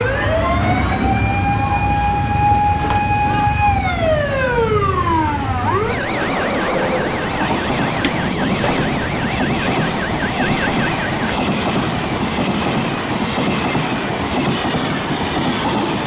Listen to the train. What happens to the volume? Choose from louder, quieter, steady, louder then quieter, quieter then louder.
louder.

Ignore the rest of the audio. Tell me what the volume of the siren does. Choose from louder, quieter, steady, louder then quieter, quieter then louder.
quieter.